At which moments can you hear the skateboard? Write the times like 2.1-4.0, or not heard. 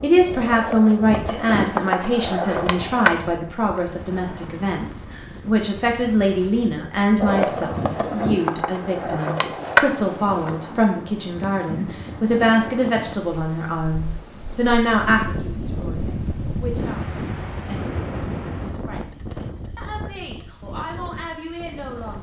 0.0-4.5, 7.2-10.6.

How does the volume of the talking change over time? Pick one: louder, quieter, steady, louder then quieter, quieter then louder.
quieter.